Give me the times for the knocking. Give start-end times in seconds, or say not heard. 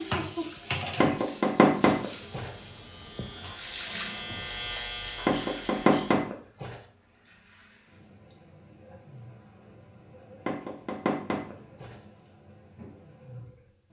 1.0-2.5, 5.2-6.8, 10.4-11.9.